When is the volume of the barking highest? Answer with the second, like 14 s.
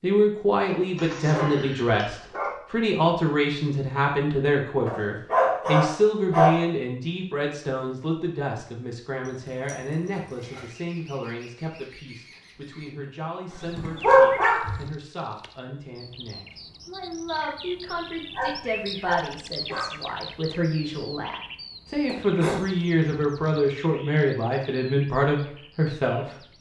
14 s.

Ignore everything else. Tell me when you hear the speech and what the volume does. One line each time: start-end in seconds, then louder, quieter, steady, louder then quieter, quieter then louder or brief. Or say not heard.
0.0-26.5 quieter then louder.